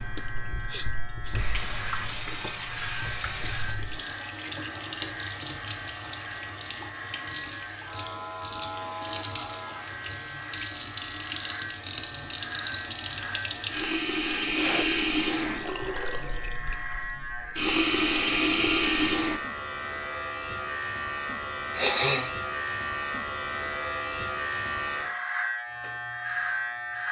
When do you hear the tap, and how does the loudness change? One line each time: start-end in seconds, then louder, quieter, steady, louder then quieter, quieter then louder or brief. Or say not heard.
0.0-19.4 louder.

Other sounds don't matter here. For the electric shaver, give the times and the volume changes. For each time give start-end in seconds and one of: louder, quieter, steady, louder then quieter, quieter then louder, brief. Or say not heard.
0.0-27.0 louder.